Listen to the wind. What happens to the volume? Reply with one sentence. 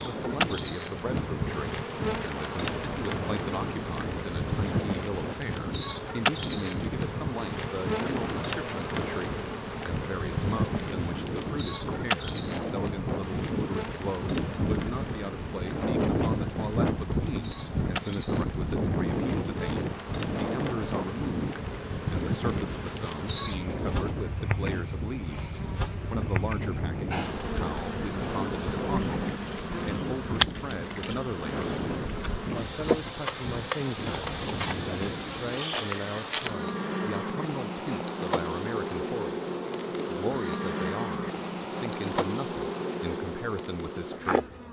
The volume of the wind goes up, then down.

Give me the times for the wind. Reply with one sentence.
You can hear the wind from 0.0 to 35.5 s.